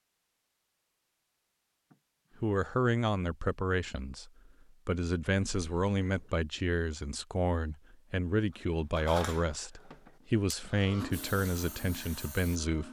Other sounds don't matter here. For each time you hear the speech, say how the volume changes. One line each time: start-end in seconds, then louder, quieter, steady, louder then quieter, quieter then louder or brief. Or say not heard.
2.4-12.8 steady.